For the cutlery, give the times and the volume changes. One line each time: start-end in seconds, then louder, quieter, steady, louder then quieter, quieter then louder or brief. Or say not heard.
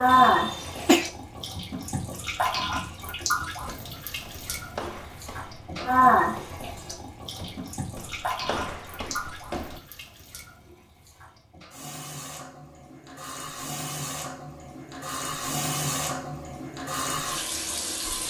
not heard.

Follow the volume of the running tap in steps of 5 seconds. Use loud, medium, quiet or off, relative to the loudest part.
loud, loud, quiet, medium.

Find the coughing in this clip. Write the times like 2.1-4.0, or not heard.
0.1-1.1.